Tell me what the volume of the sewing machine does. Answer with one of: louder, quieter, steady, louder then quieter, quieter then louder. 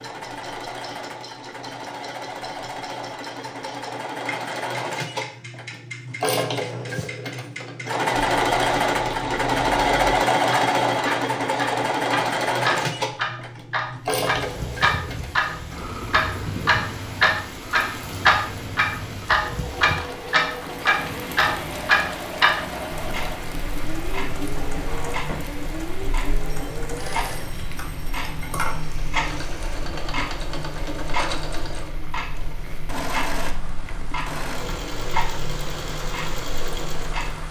louder then quieter.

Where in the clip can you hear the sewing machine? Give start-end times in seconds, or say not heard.
0.0-37.4.